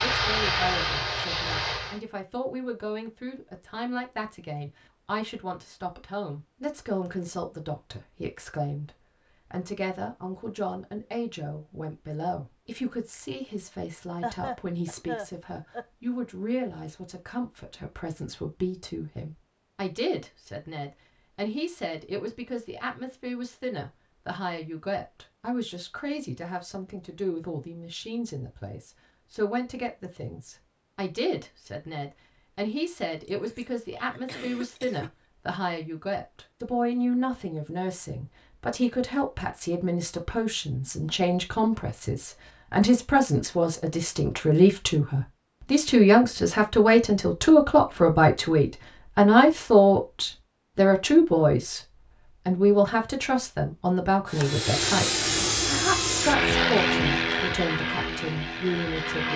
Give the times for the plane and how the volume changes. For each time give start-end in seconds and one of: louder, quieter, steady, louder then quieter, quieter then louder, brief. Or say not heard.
0.0-2.0 brief
54.2-59.3 quieter.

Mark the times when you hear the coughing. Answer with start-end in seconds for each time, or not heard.
14.2-15.8, 33.2-35.1.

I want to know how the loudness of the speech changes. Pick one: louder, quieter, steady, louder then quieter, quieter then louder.
louder.